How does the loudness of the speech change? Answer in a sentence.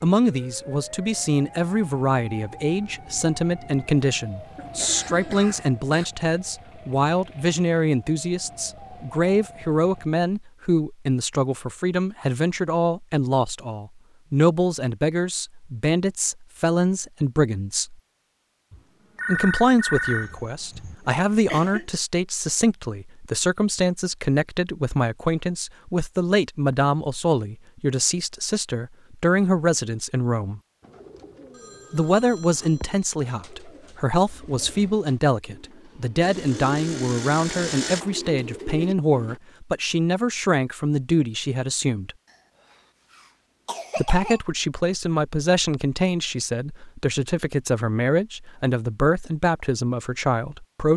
The volume of the speech stays about the same.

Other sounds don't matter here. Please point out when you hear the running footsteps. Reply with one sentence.
You can't hear the running footsteps here.